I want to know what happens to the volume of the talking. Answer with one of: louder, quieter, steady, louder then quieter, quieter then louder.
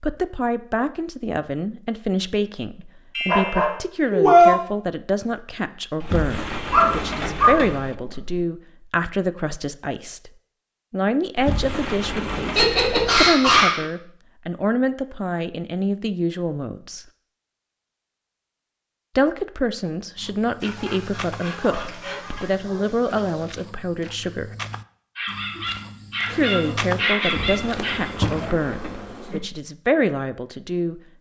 steady.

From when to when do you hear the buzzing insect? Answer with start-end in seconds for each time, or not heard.
26.2-29.4.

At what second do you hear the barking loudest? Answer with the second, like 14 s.
4 s.